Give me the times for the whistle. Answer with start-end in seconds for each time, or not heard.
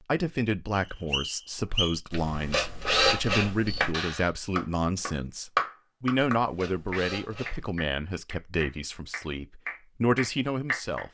0.7-2.0.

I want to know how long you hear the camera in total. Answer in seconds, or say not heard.
3 s.